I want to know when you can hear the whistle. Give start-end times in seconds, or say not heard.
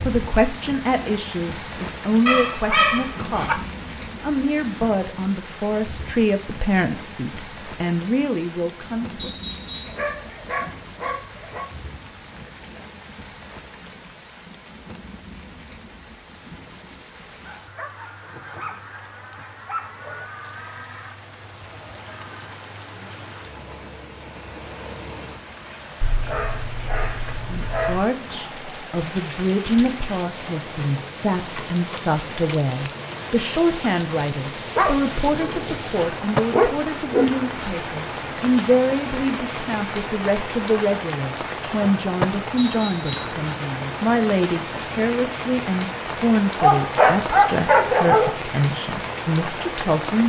9.2-10.1, 42.5-43.4.